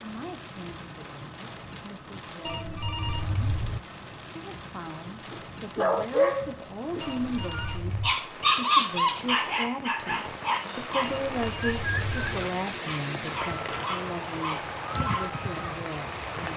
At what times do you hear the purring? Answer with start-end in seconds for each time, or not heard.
not heard.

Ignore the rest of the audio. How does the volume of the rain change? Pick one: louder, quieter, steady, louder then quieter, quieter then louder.
louder.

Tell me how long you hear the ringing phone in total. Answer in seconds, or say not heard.
4 s.